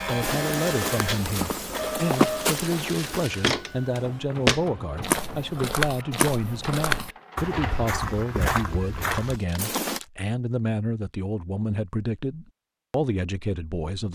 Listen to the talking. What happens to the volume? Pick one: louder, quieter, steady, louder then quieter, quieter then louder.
steady.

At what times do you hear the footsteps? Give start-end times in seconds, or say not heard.
0.2-10.0.